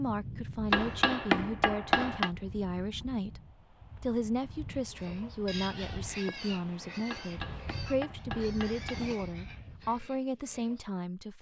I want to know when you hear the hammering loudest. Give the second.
1 s.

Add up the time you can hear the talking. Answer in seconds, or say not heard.
11 s.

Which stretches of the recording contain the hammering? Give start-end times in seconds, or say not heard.
0.7-2.3, 7.1-9.1.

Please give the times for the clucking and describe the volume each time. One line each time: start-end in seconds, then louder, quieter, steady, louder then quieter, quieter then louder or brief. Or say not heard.
not heard.